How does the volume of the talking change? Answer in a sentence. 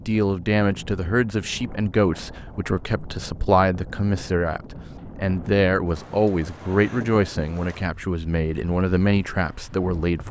The loudness of the talking stays about the same.